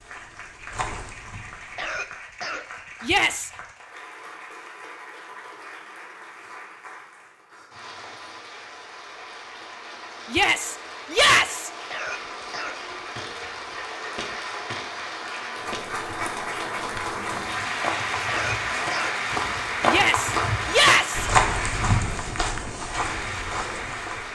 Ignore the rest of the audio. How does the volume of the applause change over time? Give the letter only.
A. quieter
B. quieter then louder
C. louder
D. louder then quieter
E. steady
C.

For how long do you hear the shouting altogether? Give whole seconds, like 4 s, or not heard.
3 s.